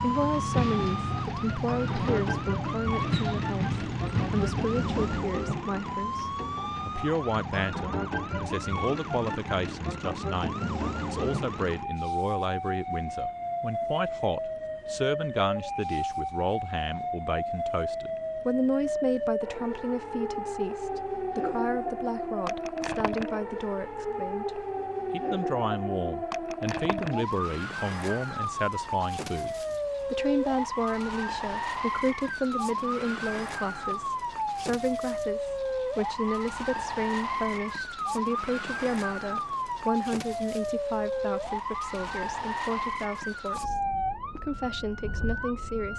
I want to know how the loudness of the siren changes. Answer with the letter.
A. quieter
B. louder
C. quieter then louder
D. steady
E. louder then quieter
D.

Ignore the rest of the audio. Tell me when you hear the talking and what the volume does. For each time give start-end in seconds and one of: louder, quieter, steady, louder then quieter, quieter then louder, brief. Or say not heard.
0.0-45.9 steady.